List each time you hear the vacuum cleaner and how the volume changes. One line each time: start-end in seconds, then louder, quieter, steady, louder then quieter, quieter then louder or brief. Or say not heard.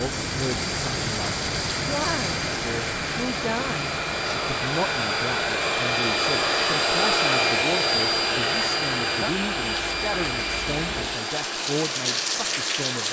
0.0-13.0 louder then quieter.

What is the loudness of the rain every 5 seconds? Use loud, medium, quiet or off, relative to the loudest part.
loud, medium, loud.